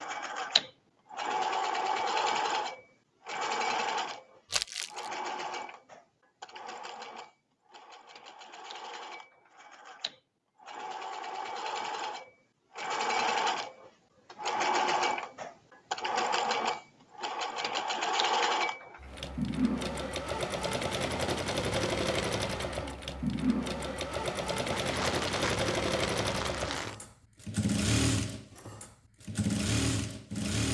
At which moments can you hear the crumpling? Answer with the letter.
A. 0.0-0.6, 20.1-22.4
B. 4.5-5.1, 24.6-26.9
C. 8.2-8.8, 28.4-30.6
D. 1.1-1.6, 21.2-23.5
B.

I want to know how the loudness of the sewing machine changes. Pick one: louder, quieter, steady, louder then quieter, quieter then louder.
quieter then louder.